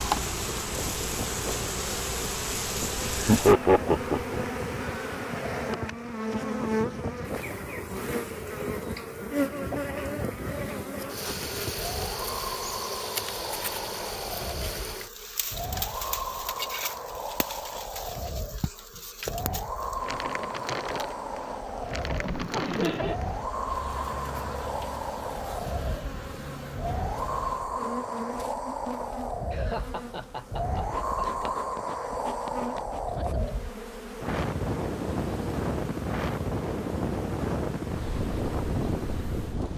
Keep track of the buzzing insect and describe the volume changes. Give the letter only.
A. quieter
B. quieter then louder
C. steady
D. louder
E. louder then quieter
A.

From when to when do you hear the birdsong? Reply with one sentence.
You can't hear the birdsong here.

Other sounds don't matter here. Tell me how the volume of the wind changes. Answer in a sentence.
The loudness of the wind goes up.